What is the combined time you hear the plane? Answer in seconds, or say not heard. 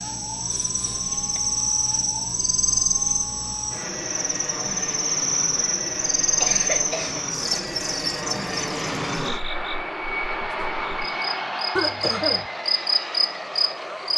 14 s.